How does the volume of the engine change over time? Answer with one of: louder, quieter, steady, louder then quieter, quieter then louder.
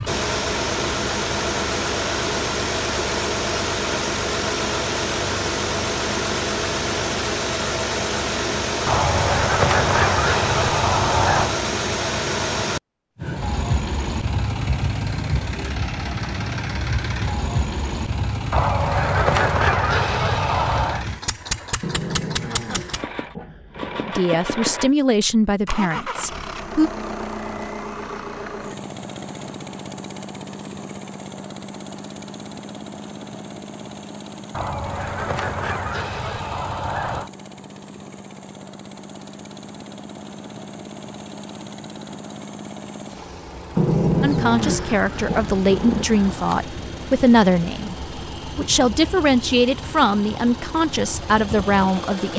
quieter.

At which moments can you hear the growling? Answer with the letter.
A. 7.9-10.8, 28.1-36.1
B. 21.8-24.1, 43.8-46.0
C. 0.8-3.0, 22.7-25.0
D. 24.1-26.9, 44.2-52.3
B.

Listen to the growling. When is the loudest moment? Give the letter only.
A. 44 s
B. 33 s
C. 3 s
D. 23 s
A.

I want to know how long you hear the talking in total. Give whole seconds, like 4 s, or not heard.
11 s.